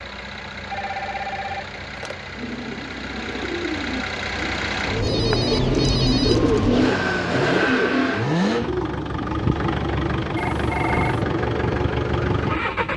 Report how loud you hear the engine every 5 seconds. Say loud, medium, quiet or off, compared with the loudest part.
medium, loud, loud.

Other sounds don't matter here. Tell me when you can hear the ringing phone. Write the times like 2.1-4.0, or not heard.
0.7-2.1, 5.0-6.5, 10.3-11.2.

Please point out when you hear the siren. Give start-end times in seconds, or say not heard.
not heard.